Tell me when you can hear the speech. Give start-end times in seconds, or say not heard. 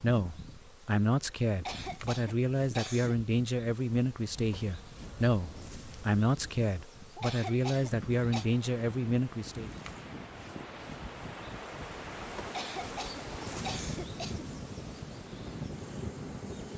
0.0-9.7.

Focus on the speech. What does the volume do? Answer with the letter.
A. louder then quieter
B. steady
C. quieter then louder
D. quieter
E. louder
B.